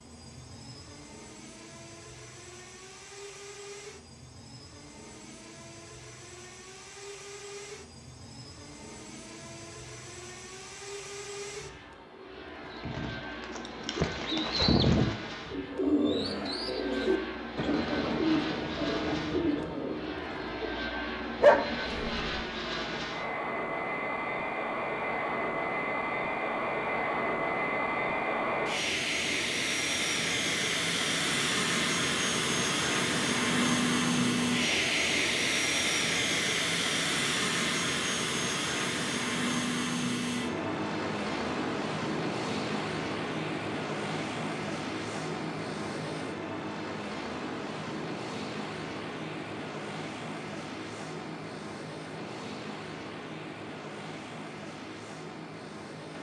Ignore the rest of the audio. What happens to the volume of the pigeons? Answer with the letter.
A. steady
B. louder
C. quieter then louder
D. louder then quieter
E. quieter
D.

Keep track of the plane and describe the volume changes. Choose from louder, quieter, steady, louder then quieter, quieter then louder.
louder then quieter.